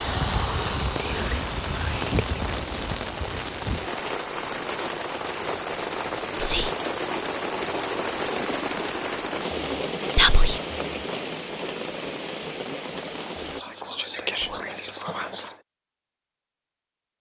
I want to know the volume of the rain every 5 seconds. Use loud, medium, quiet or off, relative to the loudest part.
loud, loud, loud, off.